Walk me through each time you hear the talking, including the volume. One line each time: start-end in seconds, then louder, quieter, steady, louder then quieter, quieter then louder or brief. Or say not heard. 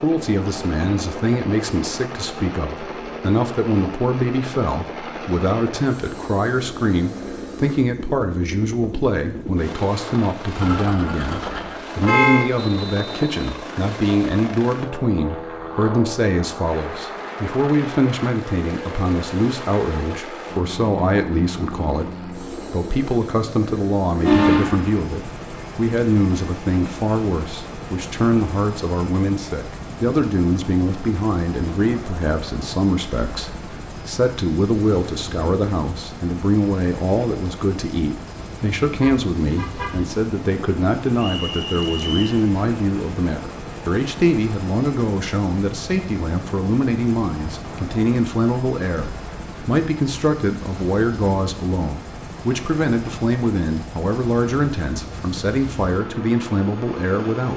0.0-57.5 steady.